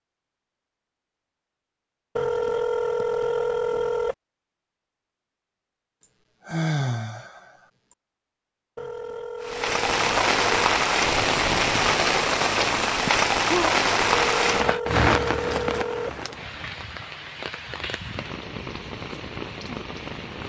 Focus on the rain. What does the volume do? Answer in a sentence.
The loudness of the rain goes down.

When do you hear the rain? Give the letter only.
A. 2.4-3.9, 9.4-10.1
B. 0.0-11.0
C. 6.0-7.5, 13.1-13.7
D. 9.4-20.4
D.